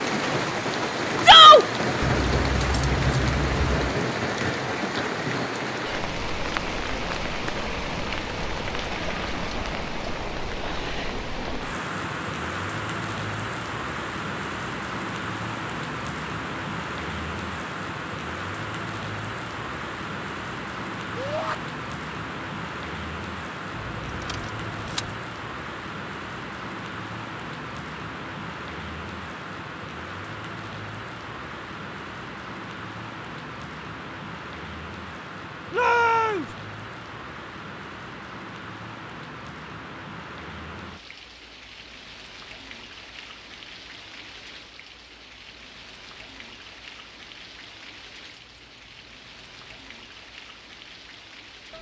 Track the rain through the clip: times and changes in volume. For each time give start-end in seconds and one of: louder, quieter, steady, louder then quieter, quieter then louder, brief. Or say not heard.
0.0-51.7 quieter.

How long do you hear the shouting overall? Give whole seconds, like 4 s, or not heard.
2 s.